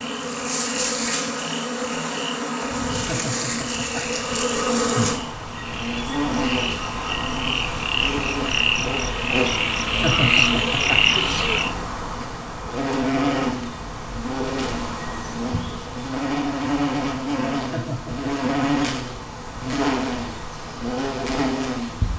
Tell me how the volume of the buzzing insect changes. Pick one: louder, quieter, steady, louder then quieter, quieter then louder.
steady.